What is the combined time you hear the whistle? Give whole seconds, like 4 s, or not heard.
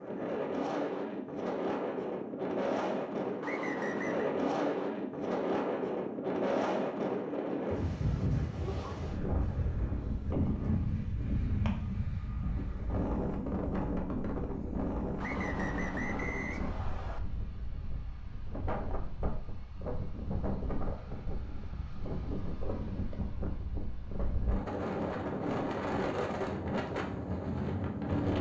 3 s.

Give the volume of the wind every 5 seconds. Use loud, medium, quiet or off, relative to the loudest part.
loud, loud, loud, medium, medium, loud.